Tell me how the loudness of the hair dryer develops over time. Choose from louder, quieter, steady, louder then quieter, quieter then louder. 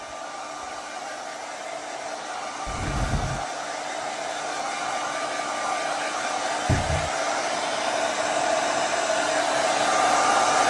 louder.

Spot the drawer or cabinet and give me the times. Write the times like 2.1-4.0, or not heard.
2.6-3.5, 6.7-7.1.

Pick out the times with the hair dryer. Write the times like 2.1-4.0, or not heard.
0.0-10.6.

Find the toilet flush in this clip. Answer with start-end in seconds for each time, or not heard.
not heard.